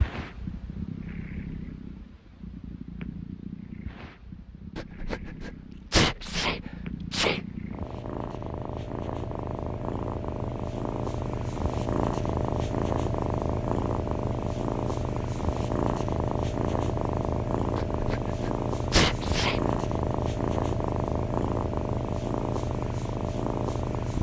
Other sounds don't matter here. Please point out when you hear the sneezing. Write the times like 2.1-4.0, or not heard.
4.8-7.4, 17.8-19.7.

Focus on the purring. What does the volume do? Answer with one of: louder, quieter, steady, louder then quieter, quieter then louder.
louder.